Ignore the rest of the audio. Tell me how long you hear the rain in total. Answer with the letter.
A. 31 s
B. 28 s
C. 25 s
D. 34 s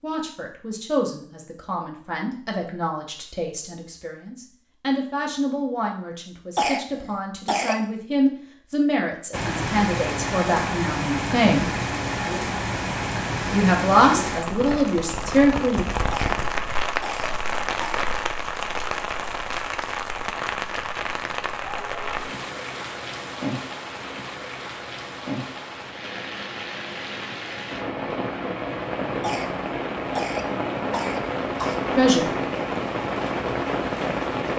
C.